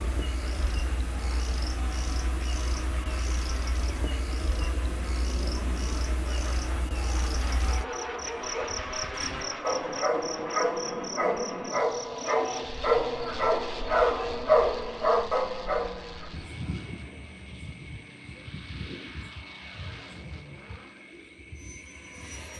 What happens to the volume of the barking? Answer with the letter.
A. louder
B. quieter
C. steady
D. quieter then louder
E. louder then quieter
A.